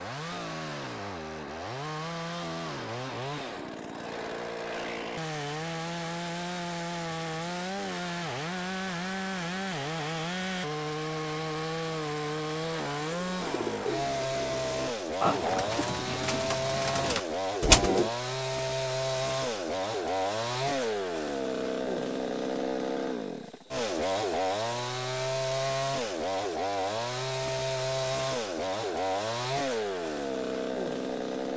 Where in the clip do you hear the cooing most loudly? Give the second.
18 s.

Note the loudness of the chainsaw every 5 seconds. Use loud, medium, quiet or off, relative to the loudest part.
medium, loud, loud, loud, loud, loud, loud.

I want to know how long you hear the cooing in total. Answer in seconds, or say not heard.
5 s.